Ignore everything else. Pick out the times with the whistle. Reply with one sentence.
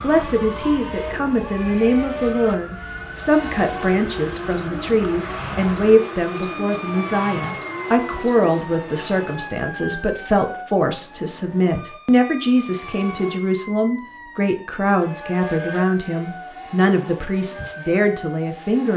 You can't hear the whistle here.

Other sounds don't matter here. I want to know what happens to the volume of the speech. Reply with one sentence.
The loudness of the speech stays about the same.